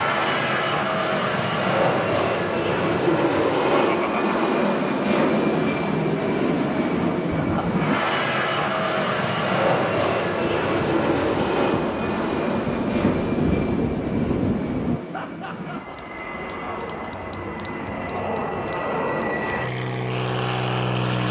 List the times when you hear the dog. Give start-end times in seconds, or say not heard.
not heard.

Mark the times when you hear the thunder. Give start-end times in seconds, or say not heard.
10.7-15.0.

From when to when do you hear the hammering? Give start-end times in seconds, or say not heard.
not heard.